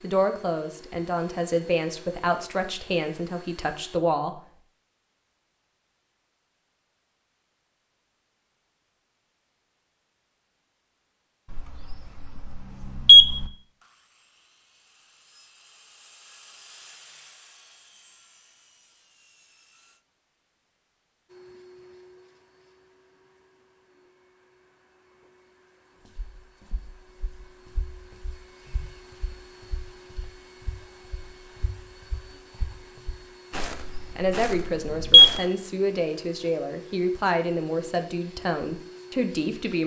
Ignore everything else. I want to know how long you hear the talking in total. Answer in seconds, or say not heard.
10 s.